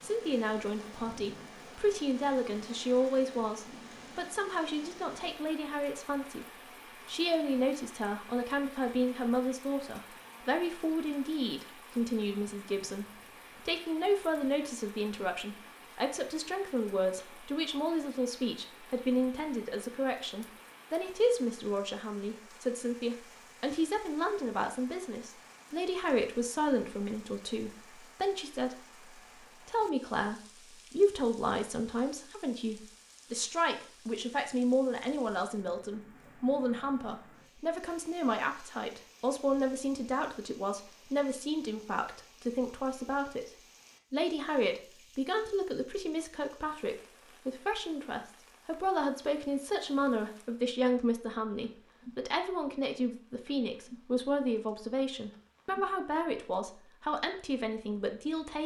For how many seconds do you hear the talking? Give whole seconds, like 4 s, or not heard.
57 s.